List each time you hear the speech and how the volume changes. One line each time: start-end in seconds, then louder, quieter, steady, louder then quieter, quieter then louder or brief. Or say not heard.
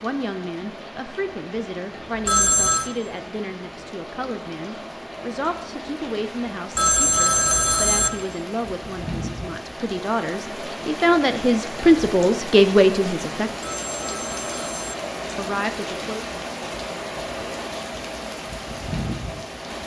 0.0-13.5 louder
15.3-16.2 brief.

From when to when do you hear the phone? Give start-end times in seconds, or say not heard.
2.2-2.9, 6.8-8.1, 13.6-14.9.